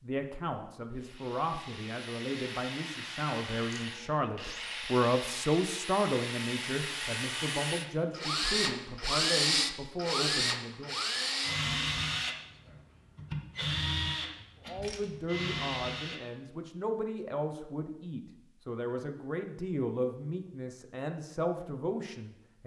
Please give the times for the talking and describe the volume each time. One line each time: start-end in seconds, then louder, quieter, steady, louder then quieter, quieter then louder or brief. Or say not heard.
0.0-11.0 louder then quieter
14.7-22.6 steady.